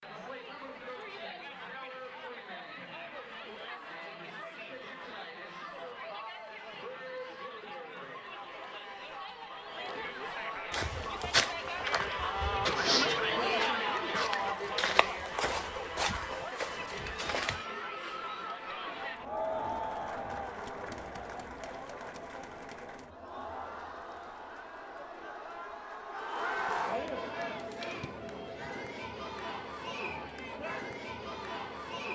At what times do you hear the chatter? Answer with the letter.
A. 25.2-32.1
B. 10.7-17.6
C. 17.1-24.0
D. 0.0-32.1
D.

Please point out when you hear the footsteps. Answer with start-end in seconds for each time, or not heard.
10.7-17.6.